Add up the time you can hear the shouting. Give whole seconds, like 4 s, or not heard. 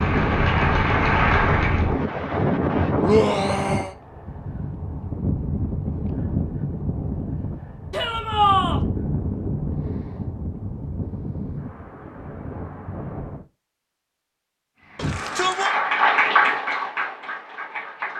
3 s.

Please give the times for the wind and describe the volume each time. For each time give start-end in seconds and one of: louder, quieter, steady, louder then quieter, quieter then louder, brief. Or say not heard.
0.0-13.4 quieter.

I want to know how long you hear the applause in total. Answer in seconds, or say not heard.
5 s.